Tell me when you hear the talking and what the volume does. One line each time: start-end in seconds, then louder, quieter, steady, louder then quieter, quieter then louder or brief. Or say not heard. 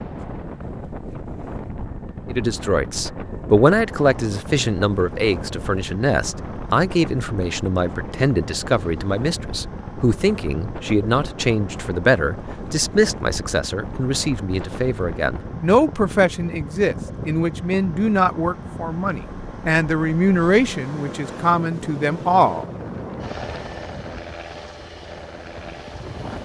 2.3-22.6 steady.